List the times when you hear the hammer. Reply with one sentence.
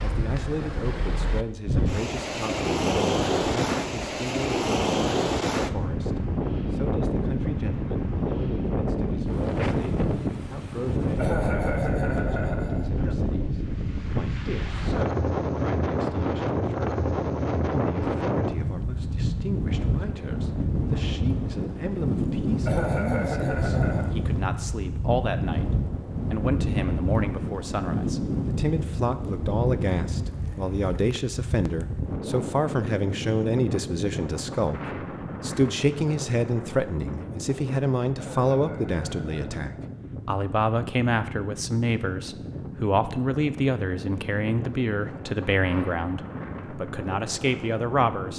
The hammer can't be heard in this clip.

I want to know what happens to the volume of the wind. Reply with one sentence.
The volume of the wind goes down.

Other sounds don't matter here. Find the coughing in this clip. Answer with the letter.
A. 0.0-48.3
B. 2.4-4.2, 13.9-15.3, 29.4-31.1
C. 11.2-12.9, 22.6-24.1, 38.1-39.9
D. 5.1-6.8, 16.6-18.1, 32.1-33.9
C.